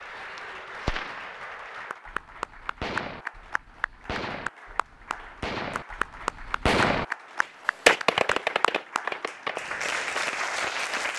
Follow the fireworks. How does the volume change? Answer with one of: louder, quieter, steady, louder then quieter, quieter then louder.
louder then quieter.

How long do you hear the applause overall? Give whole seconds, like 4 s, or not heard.
11 s.